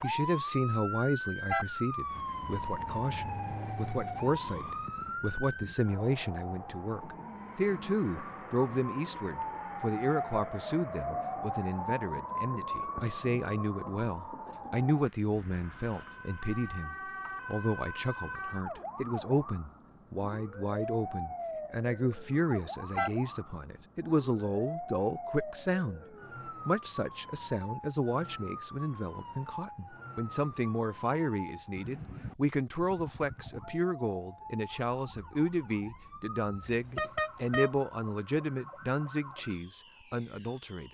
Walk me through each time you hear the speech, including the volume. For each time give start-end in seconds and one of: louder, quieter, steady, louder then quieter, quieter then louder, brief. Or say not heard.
0.0-40.8 steady.